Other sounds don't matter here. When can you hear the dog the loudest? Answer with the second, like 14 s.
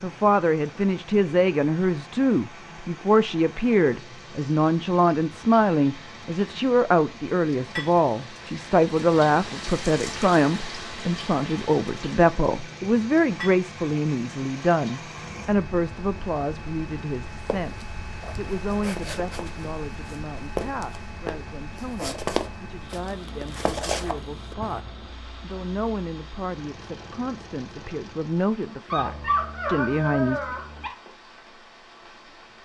29 s.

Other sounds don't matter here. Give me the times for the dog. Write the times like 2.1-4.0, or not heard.
28.9-30.9.